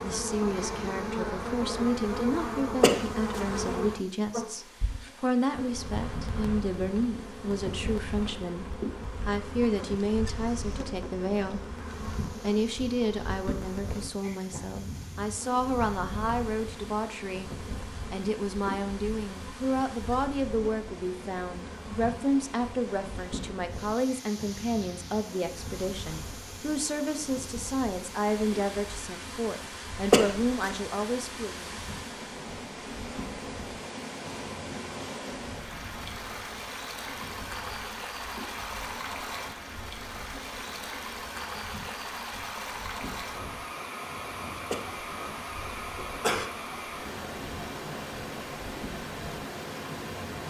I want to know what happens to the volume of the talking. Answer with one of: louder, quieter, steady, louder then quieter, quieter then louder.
steady.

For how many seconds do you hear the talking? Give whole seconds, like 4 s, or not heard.
31 s.